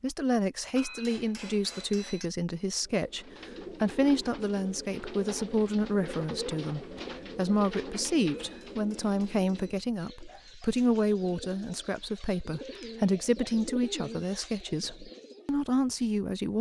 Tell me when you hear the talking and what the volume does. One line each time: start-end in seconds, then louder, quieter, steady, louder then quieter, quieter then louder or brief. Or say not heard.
0.0-16.5 steady.